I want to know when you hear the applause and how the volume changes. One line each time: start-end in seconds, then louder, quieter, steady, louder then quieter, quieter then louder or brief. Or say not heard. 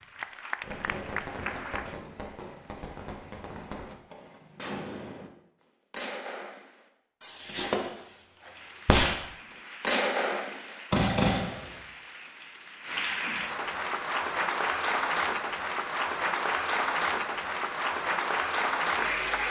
0.0-2.0 brief
8.3-19.4 louder.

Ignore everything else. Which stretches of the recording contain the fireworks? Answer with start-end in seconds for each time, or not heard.
0.6-5.3, 5.9-9.2, 9.8-11.7.